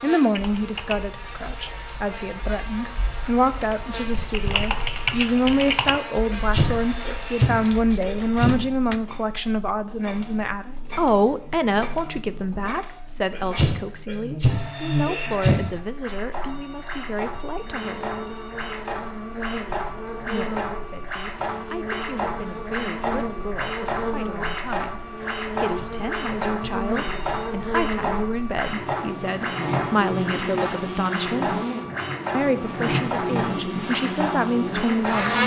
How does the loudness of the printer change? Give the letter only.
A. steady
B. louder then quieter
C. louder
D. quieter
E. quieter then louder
C.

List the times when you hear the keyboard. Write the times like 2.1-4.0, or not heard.
0.3-9.0.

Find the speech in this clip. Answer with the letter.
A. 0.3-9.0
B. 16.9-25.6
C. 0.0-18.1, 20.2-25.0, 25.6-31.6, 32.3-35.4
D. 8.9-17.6
C.